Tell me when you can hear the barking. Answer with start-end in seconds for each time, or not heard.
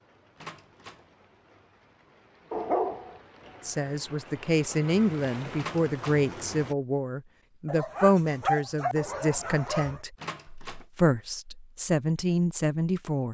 2.5-3.2, 7.7-10.0.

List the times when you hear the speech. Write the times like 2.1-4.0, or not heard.
3.6-13.2.